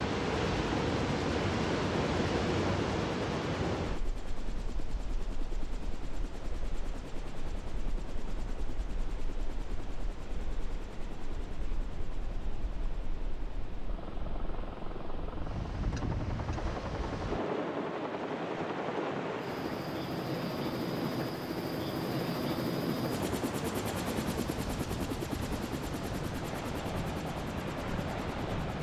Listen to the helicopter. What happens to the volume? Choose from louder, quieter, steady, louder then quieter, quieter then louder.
louder.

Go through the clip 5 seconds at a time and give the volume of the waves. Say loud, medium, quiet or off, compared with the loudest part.
loud, quiet, quiet, medium, medium, medium.